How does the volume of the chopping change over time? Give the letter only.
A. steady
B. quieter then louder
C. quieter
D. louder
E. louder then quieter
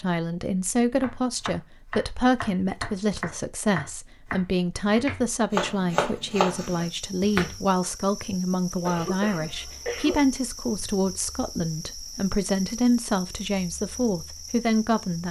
D.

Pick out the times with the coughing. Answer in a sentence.
You can hear the coughing from 8.8 to 10.2 s.